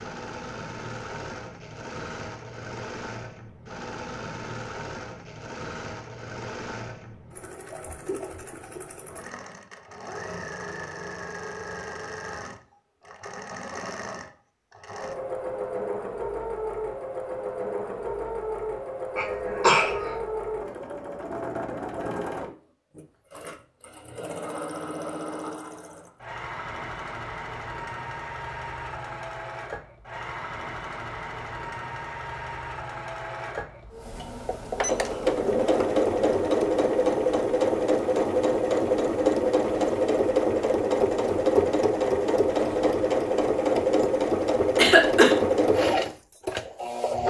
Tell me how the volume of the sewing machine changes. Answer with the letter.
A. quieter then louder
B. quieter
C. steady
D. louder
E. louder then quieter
D.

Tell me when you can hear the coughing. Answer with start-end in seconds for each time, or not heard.
19.1-20.1, 44.8-45.4.